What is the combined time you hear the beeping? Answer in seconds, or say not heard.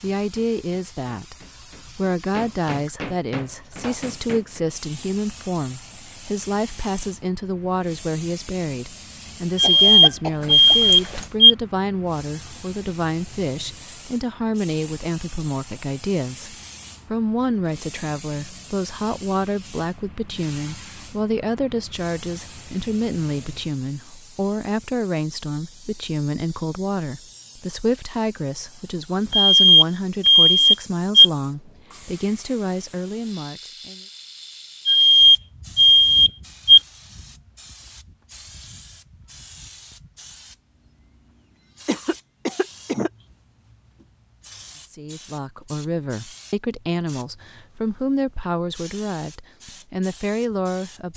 6 s.